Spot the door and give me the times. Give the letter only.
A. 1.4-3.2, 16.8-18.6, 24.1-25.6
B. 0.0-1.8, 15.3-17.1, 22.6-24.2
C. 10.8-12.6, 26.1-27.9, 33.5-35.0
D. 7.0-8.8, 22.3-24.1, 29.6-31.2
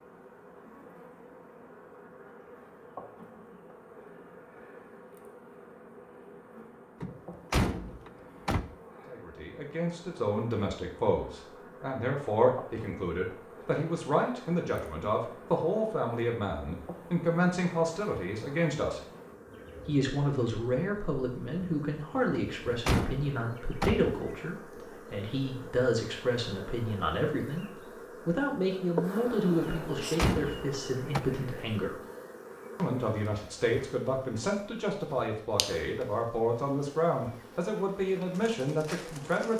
D.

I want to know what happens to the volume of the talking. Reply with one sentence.
The volume of the talking stays about the same.